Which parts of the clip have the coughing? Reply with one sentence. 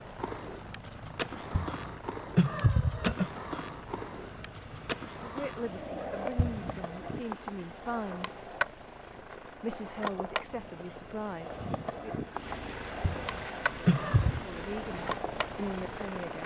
You can hear the coughing from 1.5 to 3.3 s, from 6.3 to 6.8 s and from 13.0 to 14.4 s.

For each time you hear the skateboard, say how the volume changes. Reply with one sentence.
The skateboard can be heard from 0.0 to 16.4 s, at a steady volume.